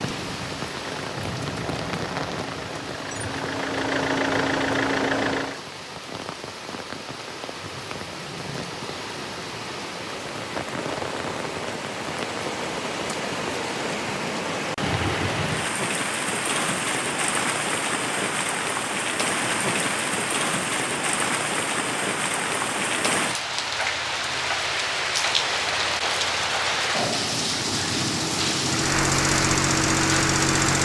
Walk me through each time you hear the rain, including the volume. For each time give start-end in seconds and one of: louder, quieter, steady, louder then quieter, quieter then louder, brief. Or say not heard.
0.0-30.8 louder.